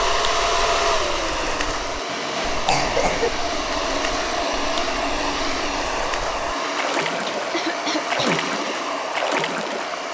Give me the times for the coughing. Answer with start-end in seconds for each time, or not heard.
2.0-3.3, 7.4-8.4.